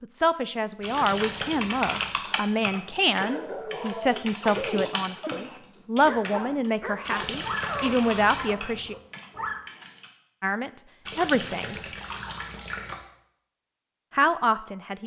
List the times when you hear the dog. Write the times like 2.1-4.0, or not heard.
2.2-9.6.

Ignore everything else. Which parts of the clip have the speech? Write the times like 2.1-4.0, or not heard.
0.0-8.9, 10.4-11.8, 14.2-15.0.